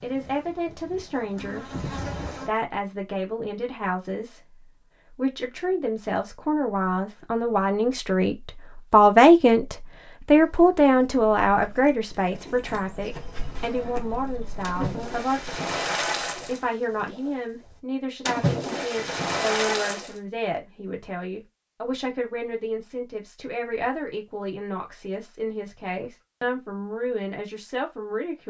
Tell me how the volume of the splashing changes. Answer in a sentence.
The loudness of the splashing goes down, then up.